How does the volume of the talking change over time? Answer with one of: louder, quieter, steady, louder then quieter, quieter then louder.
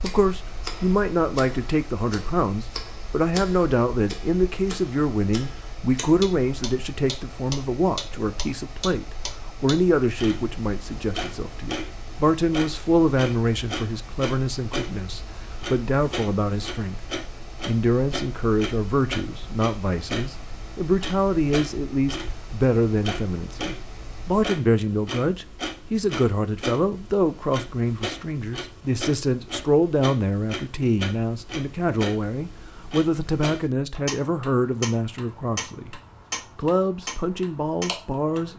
steady.